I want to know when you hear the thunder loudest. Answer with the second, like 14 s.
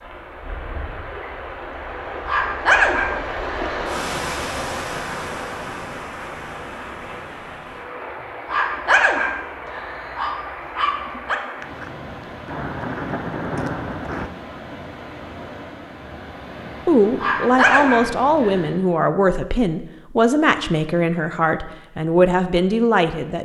14 s.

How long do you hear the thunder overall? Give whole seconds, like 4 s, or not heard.
3 s.